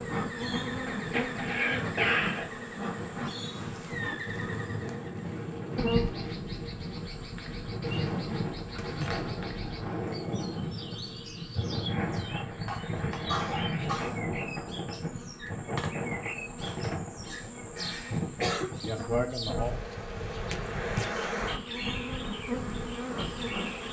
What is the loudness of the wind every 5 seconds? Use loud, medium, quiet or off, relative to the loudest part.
medium, loud, loud, loud, medium.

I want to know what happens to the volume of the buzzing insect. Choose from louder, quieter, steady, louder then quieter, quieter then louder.
quieter then louder.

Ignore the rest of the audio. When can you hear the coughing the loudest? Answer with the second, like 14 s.
2 s.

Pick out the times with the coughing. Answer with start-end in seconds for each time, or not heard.
0.8-2.5, 12.7-14.2, 17.8-18.7.